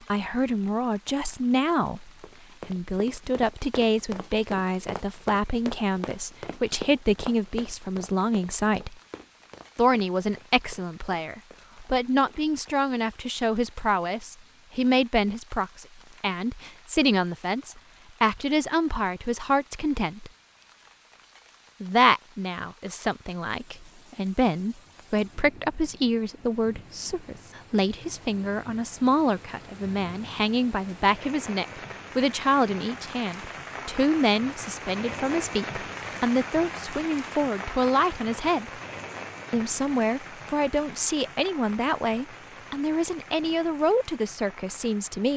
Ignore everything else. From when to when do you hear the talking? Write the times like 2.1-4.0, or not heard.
0.1-8.9, 9.8-20.3, 21.8-38.7, 39.5-45.3.